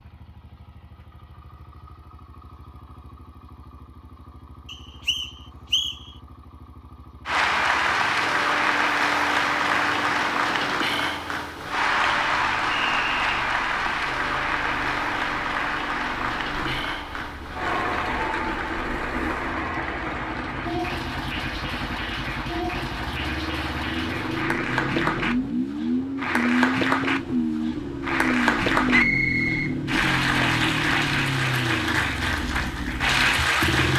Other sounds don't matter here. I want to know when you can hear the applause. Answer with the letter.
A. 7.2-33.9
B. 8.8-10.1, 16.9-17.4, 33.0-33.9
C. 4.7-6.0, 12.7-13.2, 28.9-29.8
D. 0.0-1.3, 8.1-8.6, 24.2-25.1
A.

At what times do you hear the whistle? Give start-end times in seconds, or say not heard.
4.7-6.0, 12.7-13.2, 28.9-29.8.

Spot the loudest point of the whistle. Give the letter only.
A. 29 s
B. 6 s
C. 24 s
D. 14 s
A.